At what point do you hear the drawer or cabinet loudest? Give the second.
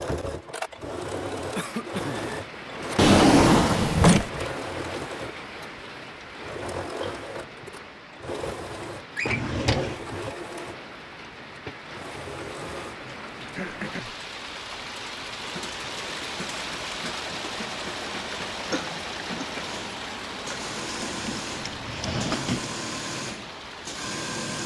3 s.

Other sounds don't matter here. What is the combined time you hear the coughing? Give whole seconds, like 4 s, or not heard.
3 s.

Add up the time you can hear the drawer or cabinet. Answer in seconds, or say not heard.
4 s.